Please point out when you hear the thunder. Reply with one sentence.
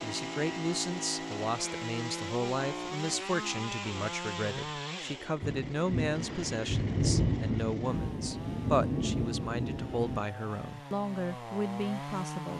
The thunder can be heard from 5.4 to 10.2 s.